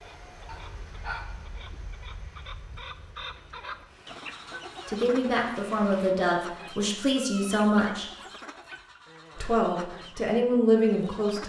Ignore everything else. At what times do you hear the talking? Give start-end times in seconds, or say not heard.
4.8-8.1, 9.3-11.4.